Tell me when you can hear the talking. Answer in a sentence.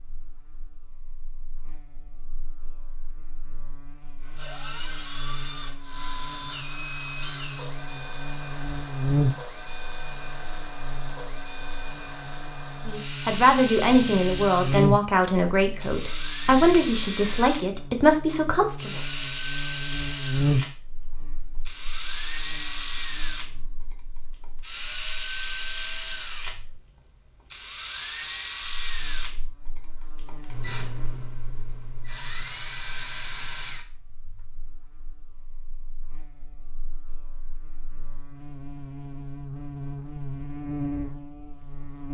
The talking can be heard from 12.8 to 19.0 s.